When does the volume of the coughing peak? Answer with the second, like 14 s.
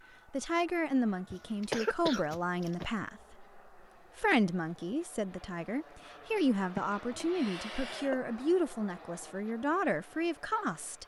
2 s.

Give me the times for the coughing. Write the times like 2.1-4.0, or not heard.
1.3-2.9, 6.8-8.2.